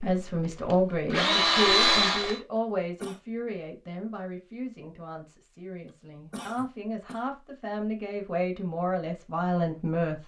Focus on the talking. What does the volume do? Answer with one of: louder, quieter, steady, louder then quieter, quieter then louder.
quieter then louder.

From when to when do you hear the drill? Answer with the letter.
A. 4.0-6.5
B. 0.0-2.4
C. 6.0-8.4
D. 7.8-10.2
B.